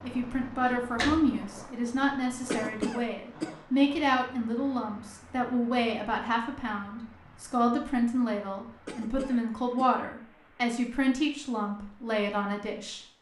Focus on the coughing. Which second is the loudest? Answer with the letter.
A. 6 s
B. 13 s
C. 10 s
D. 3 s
D.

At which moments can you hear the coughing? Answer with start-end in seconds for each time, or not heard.
2.5-3.5, 8.8-9.9.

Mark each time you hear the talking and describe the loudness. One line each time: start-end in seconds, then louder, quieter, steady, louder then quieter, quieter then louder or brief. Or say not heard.
0.0-13.0 steady.